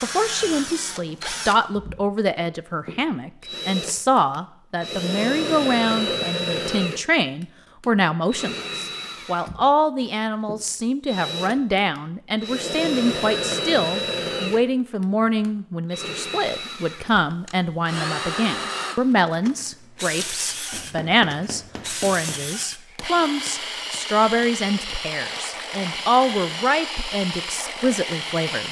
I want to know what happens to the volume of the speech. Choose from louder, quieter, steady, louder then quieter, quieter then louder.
steady.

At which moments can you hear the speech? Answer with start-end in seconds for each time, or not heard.
0.0-28.6.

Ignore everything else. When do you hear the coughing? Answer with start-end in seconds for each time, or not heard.
not heard.